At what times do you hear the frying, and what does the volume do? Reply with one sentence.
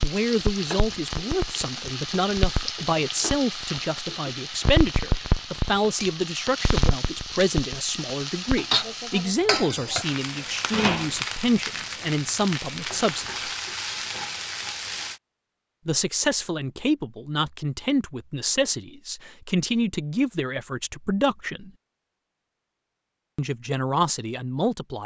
The frying can be heard from 0.0 to 15.2 s, at a steady volume.